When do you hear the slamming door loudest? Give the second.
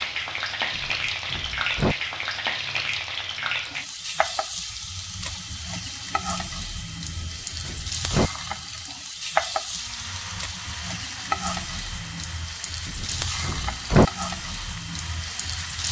14 s.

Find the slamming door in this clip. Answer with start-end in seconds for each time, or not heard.
0.7-1.9, 7.0-8.3, 12.8-14.1.